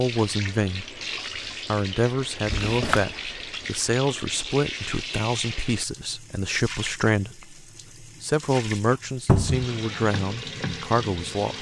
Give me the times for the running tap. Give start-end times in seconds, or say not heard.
0.0-11.5.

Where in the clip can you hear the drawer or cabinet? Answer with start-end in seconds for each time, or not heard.
2.5-3.1, 9.2-9.7.